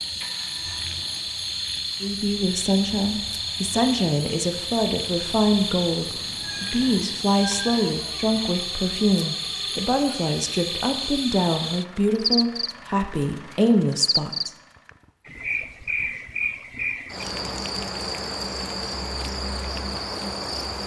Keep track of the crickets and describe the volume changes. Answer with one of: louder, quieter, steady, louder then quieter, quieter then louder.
steady.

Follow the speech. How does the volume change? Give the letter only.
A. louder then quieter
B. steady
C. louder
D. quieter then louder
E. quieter
B.